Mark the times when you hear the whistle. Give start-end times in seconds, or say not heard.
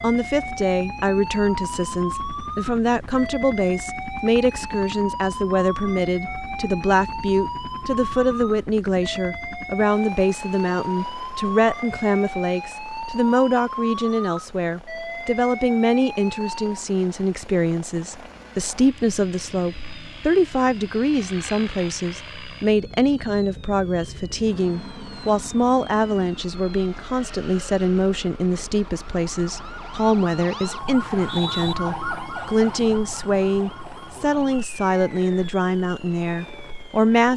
31.0-31.8.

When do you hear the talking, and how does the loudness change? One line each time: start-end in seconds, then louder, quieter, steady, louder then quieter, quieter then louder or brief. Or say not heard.
0.0-37.3 steady.